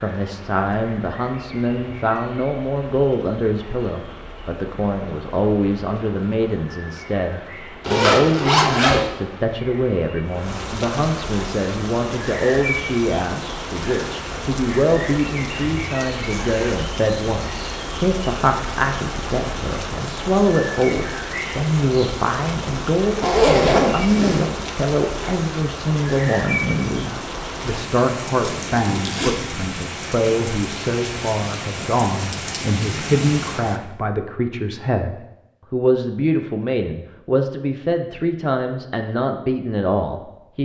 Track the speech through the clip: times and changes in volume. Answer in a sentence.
The speech can be heard from 0.0 to 40.6 s, at a steady volume.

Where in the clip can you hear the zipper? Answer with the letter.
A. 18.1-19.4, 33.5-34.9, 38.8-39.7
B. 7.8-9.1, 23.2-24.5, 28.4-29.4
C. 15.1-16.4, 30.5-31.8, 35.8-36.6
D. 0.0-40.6
B.